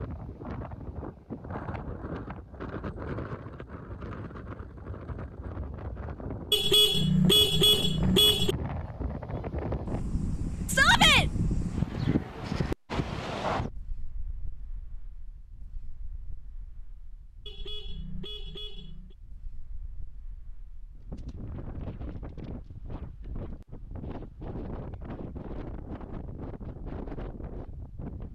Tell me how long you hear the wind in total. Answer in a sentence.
You can hear the wind for 28 seconds altogether.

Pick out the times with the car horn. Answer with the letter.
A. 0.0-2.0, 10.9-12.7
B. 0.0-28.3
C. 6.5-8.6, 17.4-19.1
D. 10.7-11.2
C.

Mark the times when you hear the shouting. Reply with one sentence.
The shouting can be heard from 10.7 to 11.2 s.